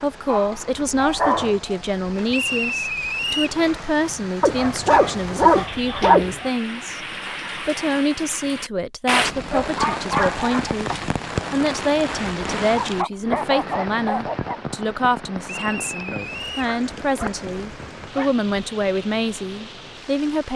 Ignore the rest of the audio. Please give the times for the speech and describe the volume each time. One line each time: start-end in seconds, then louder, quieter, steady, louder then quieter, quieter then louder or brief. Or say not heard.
0.0-20.5 steady.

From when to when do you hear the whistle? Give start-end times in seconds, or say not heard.
2.3-3.6, 15.4-16.7.